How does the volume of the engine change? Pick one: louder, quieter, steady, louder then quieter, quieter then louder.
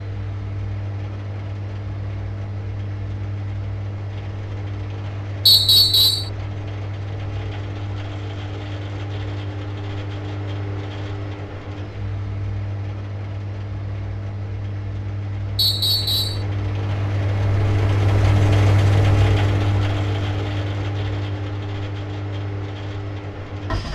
louder.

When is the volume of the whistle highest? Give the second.
6 s.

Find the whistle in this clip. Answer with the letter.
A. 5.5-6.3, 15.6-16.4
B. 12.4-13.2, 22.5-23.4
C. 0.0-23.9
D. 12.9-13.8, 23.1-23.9
A.